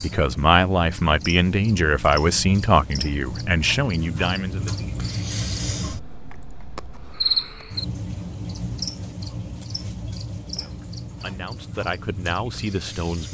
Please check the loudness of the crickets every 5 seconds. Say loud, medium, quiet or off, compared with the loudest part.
medium, loud, medium.